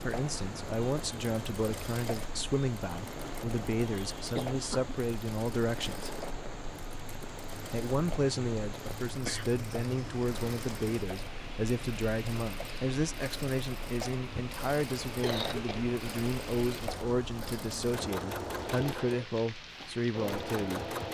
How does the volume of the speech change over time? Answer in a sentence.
The loudness of the speech stays about the same.